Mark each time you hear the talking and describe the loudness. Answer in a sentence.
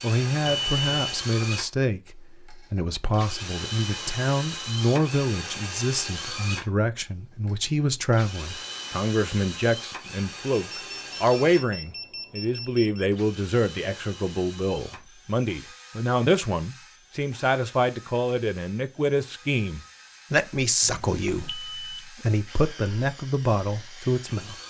You can hear the talking from 0.0 to 24.6 s, at a steady volume.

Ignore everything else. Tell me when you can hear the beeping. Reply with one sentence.
The beeping can be heard from 0.5 to 1.1 s, from 10.5 to 13.1 s and from 20.8 to 22.0 s.